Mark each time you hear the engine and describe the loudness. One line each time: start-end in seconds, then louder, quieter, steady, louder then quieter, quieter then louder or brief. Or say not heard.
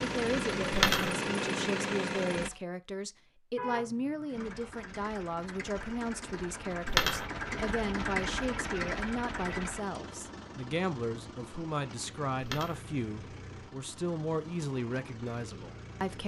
0.0-2.6 brief
4.3-16.2 louder then quieter.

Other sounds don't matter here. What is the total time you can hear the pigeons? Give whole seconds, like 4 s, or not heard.
not heard.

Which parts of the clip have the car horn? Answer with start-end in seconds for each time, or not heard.
3.5-4.6.